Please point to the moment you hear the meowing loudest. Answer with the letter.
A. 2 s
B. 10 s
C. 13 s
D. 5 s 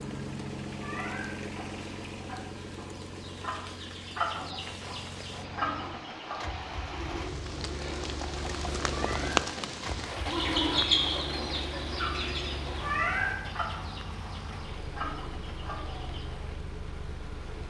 C.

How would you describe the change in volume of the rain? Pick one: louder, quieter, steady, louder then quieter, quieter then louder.
louder then quieter.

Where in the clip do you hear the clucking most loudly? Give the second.
11 s.